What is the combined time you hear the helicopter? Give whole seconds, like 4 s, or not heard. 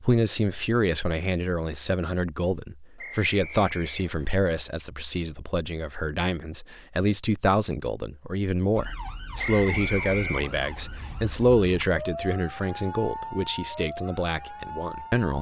not heard.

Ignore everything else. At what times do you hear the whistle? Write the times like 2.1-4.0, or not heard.
3.0-4.3, 9.3-10.5.